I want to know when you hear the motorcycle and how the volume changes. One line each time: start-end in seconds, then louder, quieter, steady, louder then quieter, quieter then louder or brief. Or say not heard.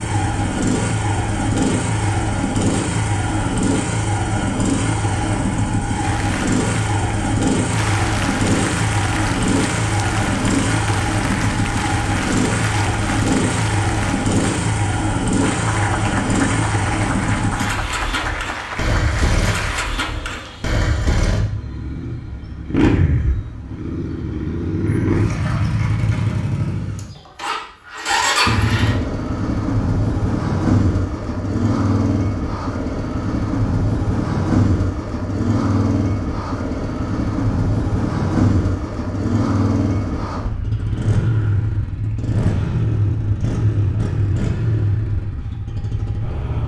0.0-46.6 steady.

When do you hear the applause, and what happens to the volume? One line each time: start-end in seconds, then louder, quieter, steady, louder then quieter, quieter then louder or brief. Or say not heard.
6.0-19.9 steady.